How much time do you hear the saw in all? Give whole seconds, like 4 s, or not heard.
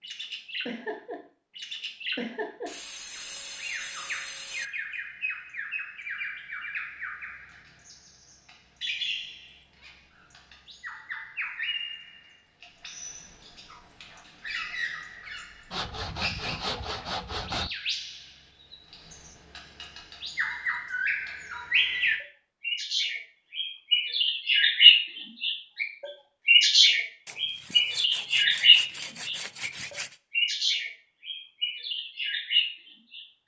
7 s.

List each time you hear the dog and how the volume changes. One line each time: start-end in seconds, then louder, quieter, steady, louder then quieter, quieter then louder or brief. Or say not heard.
not heard.